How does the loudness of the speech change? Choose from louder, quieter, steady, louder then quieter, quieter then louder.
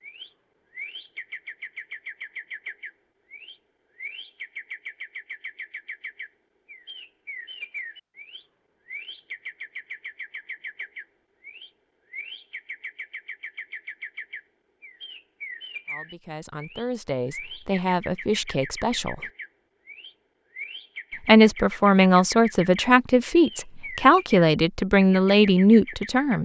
louder.